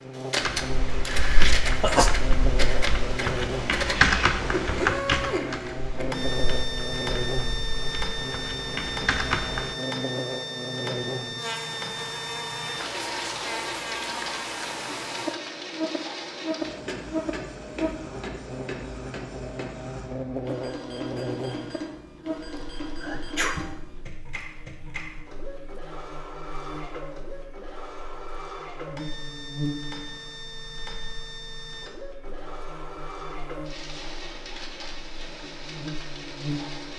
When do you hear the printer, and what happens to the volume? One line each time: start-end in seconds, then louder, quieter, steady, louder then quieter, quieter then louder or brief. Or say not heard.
0.0-36.9 quieter.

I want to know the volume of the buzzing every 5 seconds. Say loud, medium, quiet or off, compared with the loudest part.
loud, loud, loud, loud, loud, medium, quiet, loud.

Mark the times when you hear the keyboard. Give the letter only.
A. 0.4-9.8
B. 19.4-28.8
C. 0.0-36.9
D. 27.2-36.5
A.